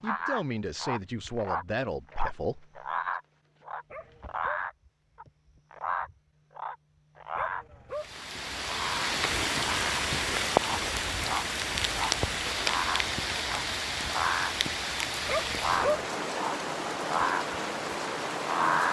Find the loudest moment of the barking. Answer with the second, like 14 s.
16 s.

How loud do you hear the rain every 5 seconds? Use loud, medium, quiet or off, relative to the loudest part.
off, loud, loud, loud.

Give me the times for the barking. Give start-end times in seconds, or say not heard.
3.9-4.7, 7.3-8.2, 15.2-16.1.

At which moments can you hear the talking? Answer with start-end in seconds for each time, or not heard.
0.0-2.8.